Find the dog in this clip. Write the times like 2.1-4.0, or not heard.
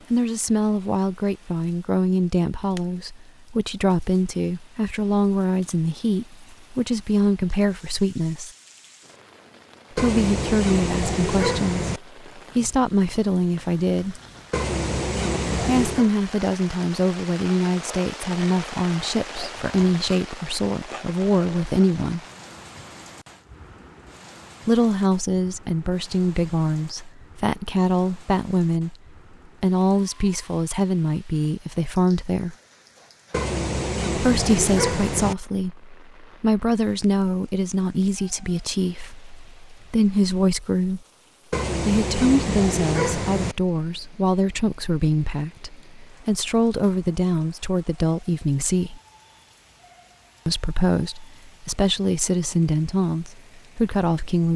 9.9-12.0, 14.5-16.1, 33.3-35.4, 41.5-43.5.